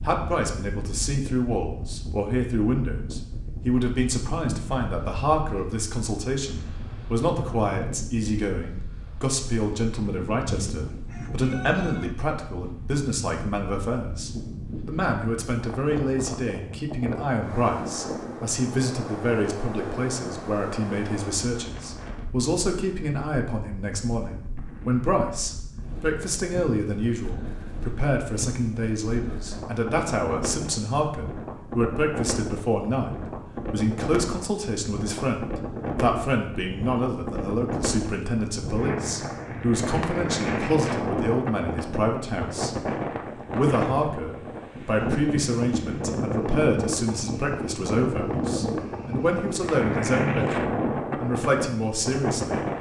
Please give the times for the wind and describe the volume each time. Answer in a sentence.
The wind can be heard from 0.0 to 52.7 s, getting louder.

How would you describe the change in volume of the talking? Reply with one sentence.
The loudness of the talking stays about the same.